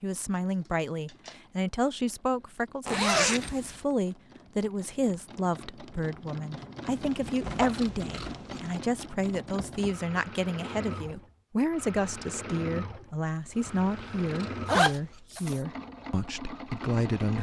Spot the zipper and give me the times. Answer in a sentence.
The zipper can be heard from 2.9 to 3.8 s, from 7.4 to 8.3 s and from 14.7 to 15.6 s.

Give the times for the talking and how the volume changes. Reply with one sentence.
The talking can be heard from 0.0 to 17.3 s, at a steady volume.